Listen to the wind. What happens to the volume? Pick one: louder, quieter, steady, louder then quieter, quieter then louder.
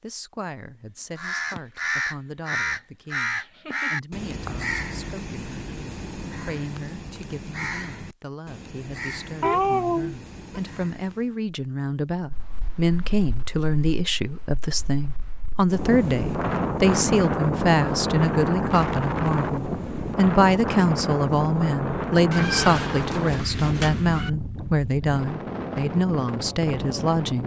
louder then quieter.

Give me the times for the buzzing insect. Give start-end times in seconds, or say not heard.
not heard.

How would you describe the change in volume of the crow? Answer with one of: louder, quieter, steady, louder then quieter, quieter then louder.
quieter.